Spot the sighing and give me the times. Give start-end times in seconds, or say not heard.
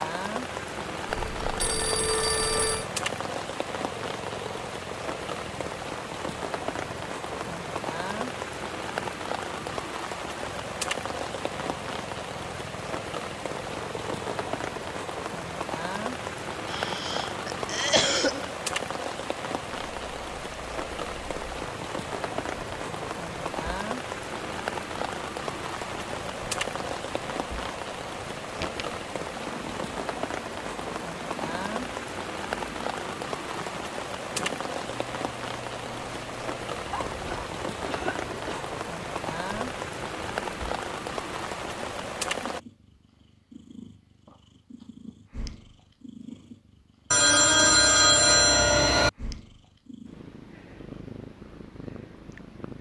not heard.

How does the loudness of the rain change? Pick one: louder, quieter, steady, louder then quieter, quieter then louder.
steady.